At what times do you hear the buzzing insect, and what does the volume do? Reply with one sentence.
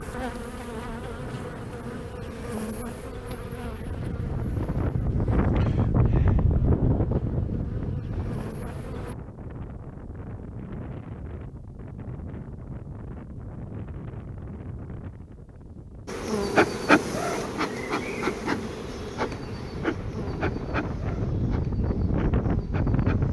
You can hear the buzzing insect from 0.0 to 9.2 s, getting quieter then louder; and from 16.1 to 23.2 s, getting quieter.